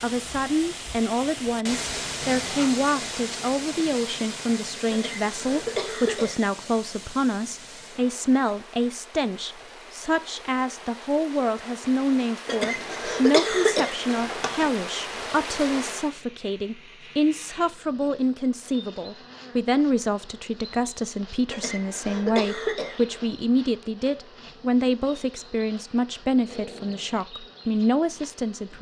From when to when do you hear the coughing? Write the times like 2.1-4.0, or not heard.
4.9-6.4, 12.4-14.7, 21.5-23.2.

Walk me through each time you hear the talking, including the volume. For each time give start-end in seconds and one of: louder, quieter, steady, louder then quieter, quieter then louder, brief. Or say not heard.
0.0-28.7 steady.